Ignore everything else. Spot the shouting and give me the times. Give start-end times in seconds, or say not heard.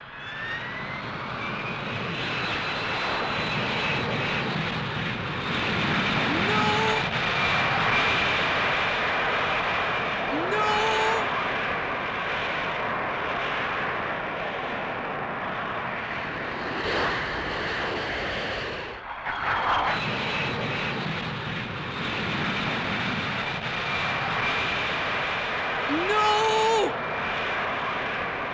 6.3-7.0, 10.3-11.3, 25.9-26.9.